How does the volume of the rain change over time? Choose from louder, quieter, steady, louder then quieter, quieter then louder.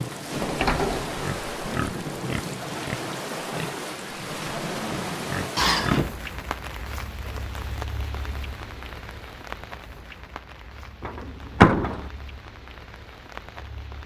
quieter.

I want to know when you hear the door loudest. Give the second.
12 s.